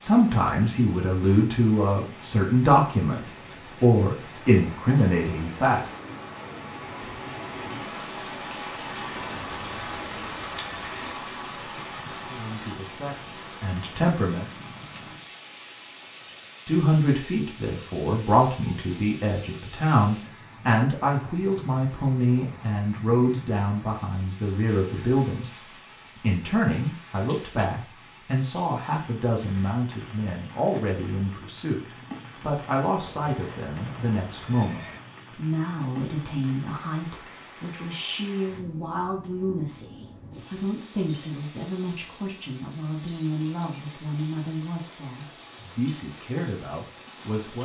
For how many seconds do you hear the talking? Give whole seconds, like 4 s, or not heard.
38 s.